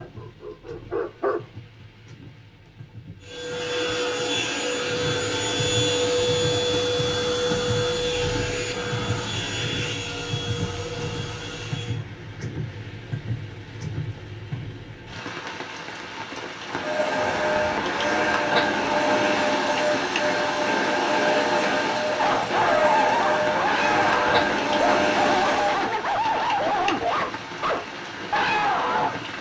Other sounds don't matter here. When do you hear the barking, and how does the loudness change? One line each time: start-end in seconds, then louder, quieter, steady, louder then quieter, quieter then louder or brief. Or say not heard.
0.0-1.5 brief
22.1-29.2 steady.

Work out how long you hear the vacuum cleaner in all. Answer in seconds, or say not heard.
18 s.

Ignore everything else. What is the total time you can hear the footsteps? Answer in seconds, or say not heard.
not heard.